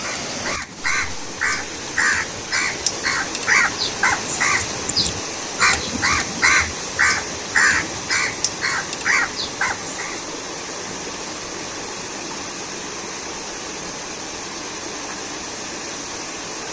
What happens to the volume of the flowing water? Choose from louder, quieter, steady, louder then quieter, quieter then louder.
steady.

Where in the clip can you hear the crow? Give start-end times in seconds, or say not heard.
0.0-10.2.